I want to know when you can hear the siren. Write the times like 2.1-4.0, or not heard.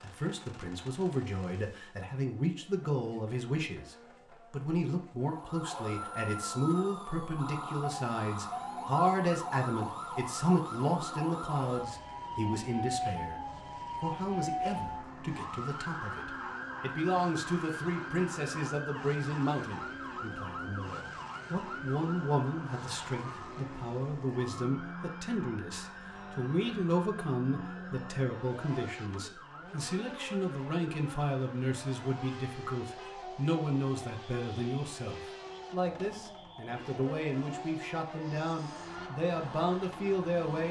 5.2-40.5.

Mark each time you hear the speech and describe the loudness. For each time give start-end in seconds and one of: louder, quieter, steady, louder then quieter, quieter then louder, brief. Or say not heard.
0.0-40.6 steady.